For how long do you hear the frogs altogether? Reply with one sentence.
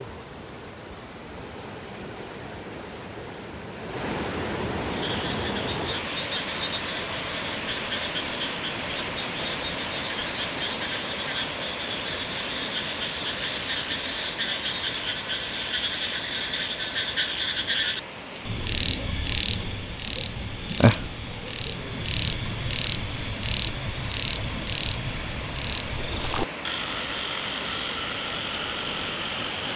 The frogs can be heard for 25 seconds in total.